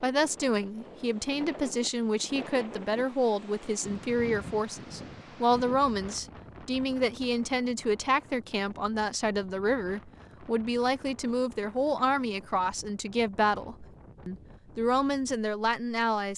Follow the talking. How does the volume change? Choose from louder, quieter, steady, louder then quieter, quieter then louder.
steady.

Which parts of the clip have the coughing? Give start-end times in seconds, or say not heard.
not heard.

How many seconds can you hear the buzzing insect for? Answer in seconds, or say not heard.
not heard.